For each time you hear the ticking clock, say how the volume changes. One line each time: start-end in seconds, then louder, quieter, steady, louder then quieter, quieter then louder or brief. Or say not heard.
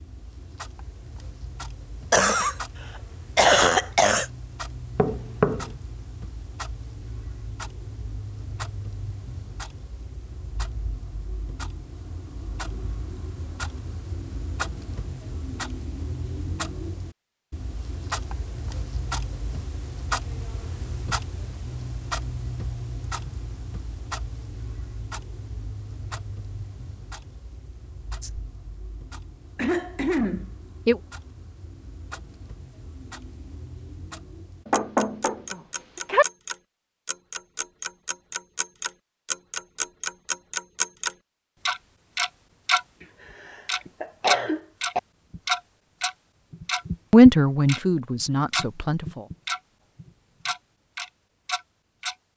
0.0-52.1 louder.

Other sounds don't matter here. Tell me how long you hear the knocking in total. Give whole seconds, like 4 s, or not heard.
2 s.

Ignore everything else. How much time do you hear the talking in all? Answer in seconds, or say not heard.
2 s.